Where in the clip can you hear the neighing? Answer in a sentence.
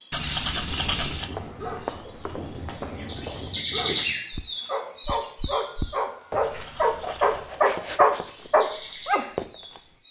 The neighing can be heard from 0.1 to 1.4 s and from 6.4 to 7.6 s.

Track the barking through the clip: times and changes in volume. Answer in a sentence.
You can hear the barking from 0.5 to 9.2 s, getting louder.